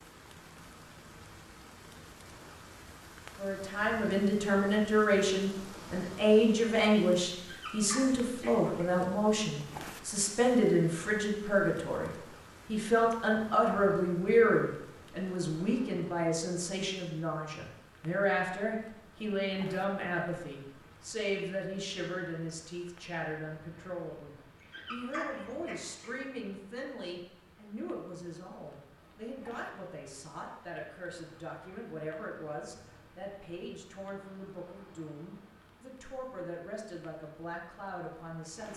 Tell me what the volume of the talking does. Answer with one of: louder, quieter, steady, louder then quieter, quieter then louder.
quieter.